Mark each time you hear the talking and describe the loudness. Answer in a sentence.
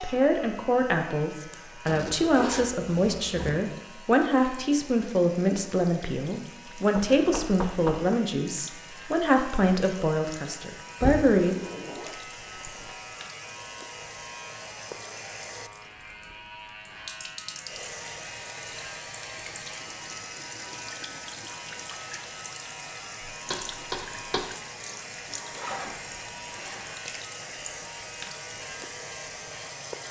The talking can be heard from 0.0 to 11.6 s, at a steady volume.